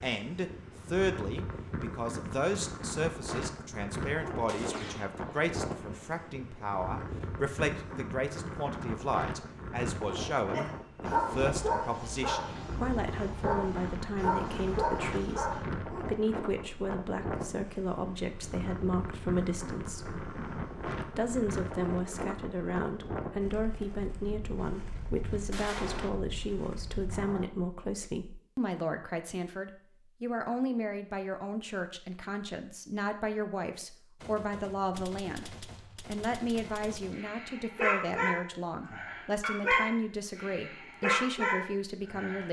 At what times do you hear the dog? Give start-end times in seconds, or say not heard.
10.5-15.6, 37.1-42.4.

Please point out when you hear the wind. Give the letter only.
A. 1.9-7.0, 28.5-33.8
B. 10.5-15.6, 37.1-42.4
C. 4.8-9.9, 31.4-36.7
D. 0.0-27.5
D.